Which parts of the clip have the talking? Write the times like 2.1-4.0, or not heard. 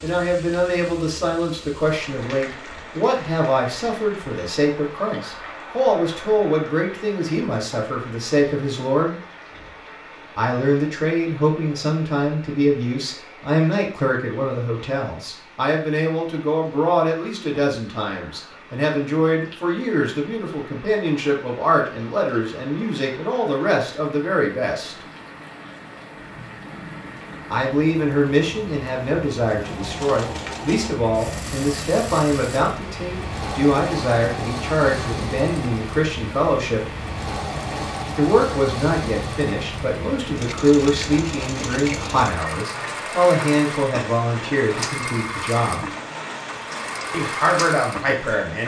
0.0-9.2, 10.3-25.1, 27.5-36.8, 38.1-45.9, 47.1-48.6.